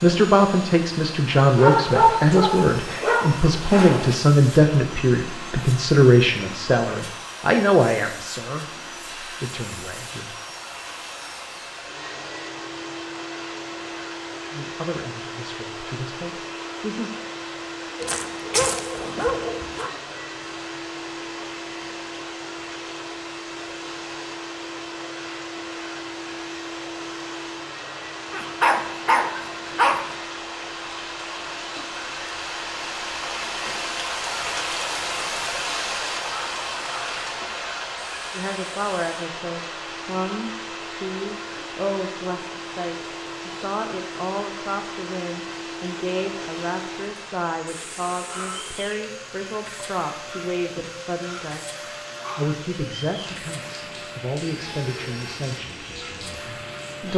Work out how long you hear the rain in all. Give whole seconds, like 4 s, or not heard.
57 s.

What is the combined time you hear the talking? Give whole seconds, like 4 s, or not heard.
32 s.